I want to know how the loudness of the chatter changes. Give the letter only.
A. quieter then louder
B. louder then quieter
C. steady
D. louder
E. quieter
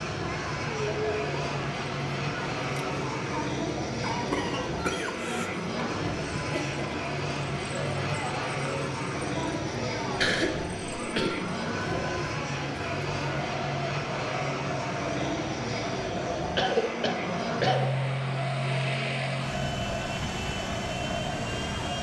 C.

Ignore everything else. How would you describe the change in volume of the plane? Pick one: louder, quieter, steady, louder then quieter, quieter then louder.
steady.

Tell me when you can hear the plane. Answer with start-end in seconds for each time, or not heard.
0.0-21.9.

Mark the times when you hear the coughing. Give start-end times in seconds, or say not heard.
4.0-5.5, 10.2-11.4, 16.6-17.9.